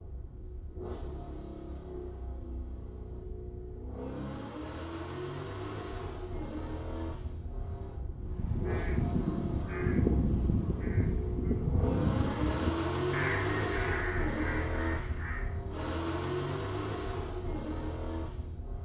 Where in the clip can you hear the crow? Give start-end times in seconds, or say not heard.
8.2-15.6.